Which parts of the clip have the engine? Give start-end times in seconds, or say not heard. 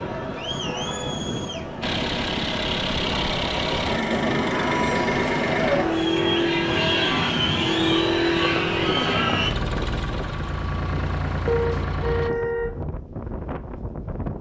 1.8-12.3.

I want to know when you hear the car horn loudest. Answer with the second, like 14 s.
12 s.